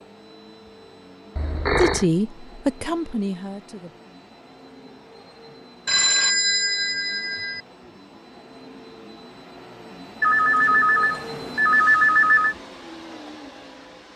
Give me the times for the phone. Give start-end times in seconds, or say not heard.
1.4-2.0, 5.8-7.6, 10.2-12.6.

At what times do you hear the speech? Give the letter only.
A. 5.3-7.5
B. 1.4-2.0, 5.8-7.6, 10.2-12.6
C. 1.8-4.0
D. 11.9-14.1
C.